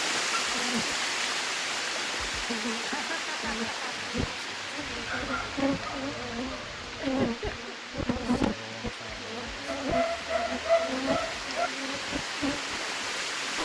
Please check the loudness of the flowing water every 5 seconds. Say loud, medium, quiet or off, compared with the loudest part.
loud, medium, loud.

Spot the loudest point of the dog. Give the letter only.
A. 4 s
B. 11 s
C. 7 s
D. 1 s
B.